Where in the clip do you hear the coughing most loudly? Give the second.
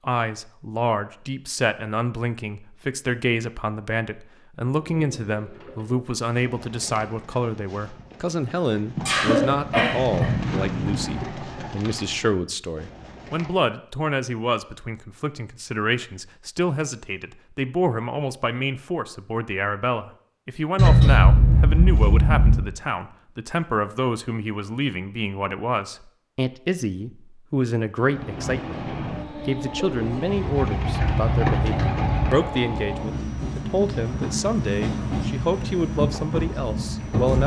21 s.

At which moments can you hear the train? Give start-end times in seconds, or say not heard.
28.0-37.4.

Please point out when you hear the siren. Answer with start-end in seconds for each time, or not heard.
not heard.